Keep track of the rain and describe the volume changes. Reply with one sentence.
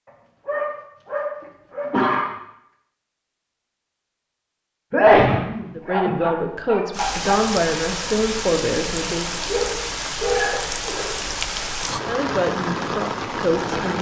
The volume of the rain stays about the same.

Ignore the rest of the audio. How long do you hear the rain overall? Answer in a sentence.
You can hear the rain for 7 seconds altogether.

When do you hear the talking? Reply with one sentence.
The talking can be heard from 5.8 to 9.2 s and from 12.1 to 13.9 s.